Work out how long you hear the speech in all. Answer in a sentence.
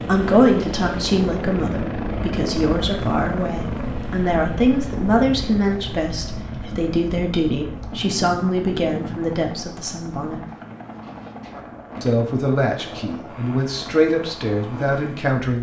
You can hear the speech for 14 seconds altogether.